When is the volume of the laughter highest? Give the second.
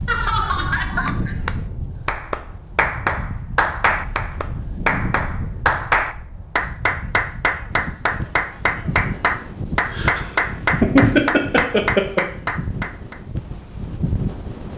11 s.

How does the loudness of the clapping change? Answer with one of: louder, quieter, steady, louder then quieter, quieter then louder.
steady.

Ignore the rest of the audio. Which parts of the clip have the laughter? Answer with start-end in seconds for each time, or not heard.
0.1-1.4, 9.9-12.2.